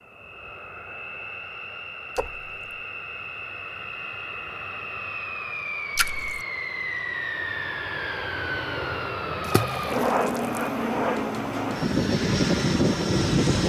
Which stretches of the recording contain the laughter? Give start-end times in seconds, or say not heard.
not heard.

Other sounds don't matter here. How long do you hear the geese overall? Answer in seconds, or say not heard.
not heard.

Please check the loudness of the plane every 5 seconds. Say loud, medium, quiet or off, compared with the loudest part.
quiet, medium, loud.